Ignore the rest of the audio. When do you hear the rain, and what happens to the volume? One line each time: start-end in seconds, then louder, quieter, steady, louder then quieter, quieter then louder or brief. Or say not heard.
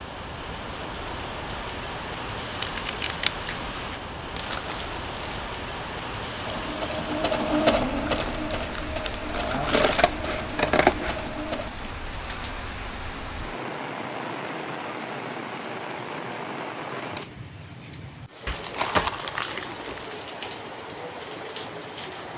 0.0-22.3 steady.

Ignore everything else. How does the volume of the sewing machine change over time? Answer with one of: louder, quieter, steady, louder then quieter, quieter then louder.
quieter.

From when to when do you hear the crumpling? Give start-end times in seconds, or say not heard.
4.3-5.5, 8.1-10.1, 18.4-20.1.